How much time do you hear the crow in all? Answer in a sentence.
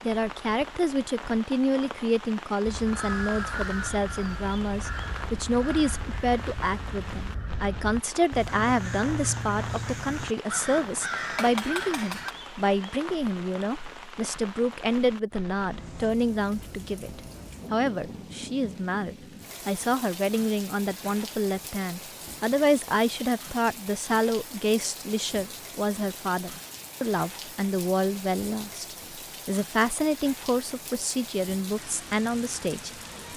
The crow can be heard for 10 seconds in total.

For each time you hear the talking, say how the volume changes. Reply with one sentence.
The talking can be heard from 0.0 to 32.9 s, at a steady volume.